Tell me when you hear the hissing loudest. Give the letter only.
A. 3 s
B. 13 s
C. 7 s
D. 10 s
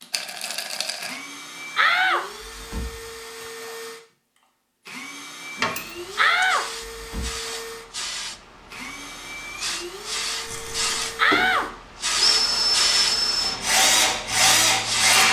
B.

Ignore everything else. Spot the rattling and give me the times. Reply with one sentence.
The rattling can be heard from 0.1 to 1.2 s, from 5.5 to 6.0 s and from 10.4 to 11.2 s.